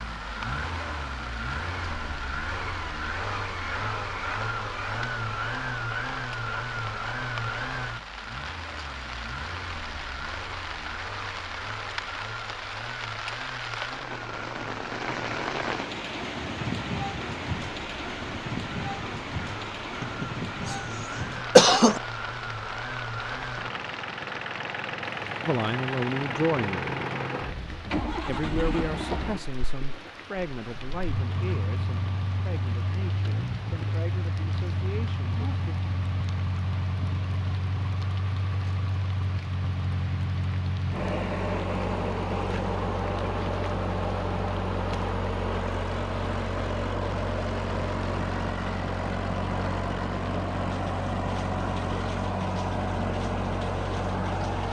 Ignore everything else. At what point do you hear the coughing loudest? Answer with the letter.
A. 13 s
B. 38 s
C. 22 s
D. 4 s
C.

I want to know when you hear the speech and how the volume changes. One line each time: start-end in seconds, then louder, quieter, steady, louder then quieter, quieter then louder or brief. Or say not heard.
25.4-26.9 brief
28.2-35.8 quieter.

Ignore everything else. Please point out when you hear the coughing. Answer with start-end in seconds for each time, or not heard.
20.0-20.8, 21.6-22.0.